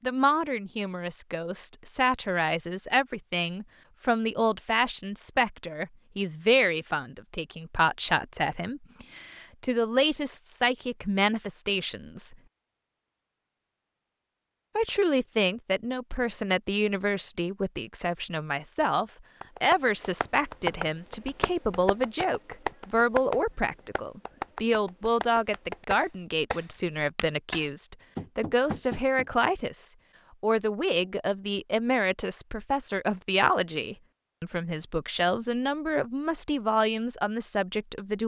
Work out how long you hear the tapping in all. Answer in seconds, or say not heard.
10 s.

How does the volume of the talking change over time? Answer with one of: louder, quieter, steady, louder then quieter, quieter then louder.
steady.